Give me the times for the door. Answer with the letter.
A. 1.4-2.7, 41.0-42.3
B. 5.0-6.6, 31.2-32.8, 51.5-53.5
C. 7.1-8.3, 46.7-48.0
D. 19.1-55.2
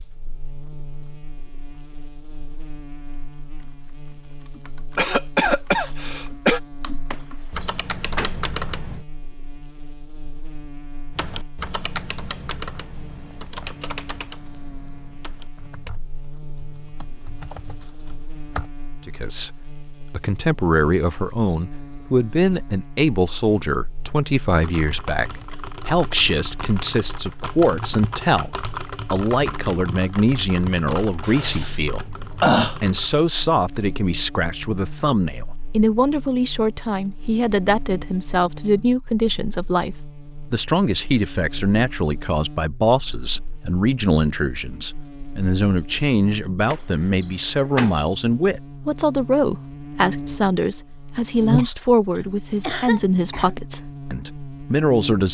C.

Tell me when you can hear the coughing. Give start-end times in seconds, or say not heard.
5.0-6.6, 31.2-32.8, 51.5-53.5.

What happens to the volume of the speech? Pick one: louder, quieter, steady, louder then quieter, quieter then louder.
steady.